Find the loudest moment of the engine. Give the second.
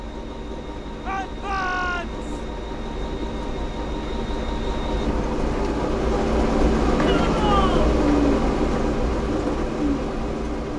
8 s.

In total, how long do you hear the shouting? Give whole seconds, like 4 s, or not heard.
2 s.